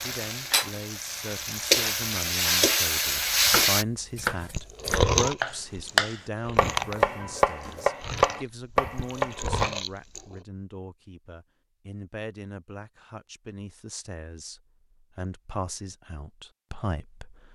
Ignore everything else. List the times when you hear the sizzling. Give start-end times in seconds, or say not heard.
0.0-3.9.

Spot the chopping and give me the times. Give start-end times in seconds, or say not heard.
3.3-9.7.